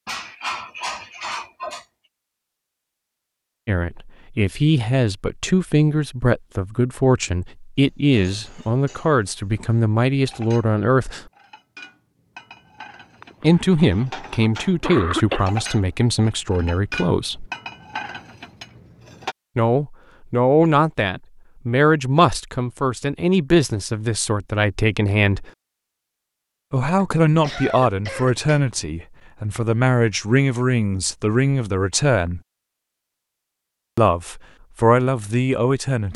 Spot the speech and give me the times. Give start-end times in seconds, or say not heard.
3.6-11.2, 13.4-17.5, 19.6-25.5, 26.7-32.4, 34.0-36.1.